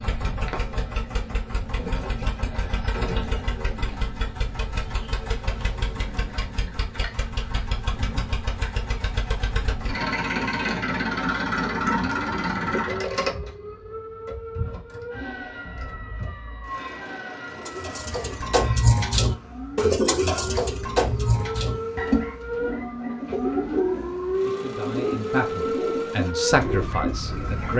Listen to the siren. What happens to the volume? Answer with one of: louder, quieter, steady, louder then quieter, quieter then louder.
louder.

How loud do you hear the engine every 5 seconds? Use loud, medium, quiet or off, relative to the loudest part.
medium, medium, loud, quiet, quiet, quiet.